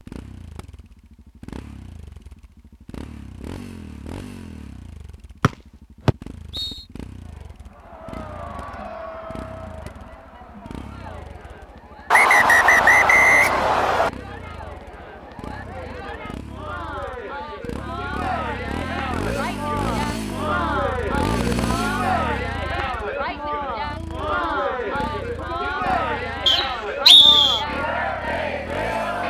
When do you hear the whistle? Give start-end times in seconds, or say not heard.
5.4-6.8, 12.1-14.1, 26.4-27.6.